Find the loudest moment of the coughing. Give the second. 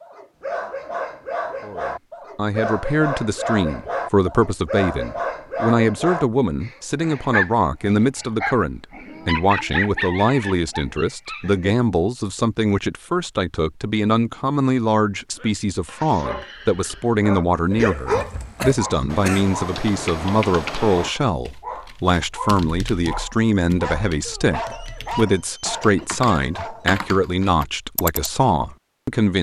18 s.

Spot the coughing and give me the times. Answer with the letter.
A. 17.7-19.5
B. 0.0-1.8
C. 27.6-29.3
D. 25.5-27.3
A.